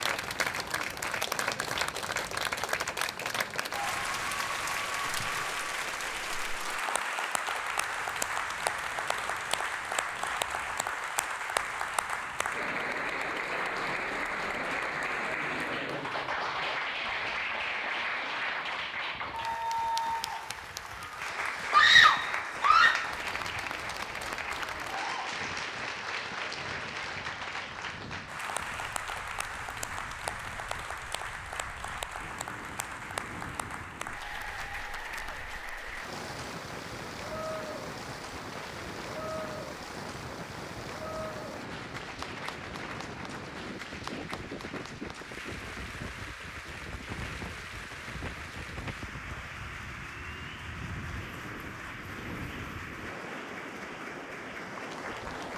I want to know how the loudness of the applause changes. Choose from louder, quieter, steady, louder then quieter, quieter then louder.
quieter.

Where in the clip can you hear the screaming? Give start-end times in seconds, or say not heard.
21.7-23.1.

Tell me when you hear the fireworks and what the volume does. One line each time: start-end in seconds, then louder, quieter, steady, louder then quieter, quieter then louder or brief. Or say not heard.
not heard.